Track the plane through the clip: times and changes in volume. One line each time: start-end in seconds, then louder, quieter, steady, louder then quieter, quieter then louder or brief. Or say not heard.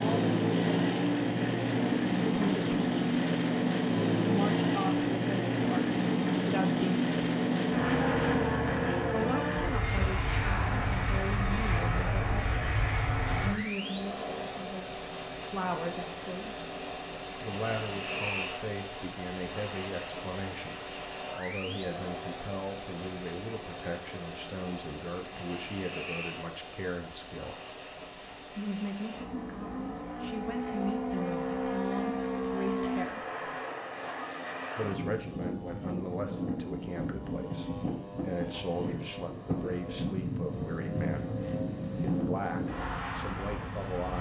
0.0-44.1 quieter.